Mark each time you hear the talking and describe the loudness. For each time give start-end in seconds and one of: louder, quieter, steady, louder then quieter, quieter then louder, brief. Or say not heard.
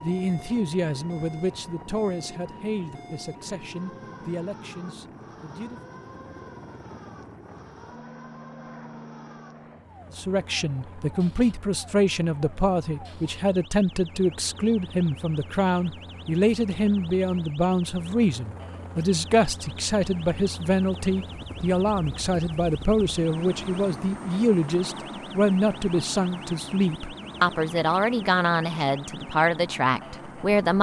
0.0-5.8 quieter
10.2-30.7 steady.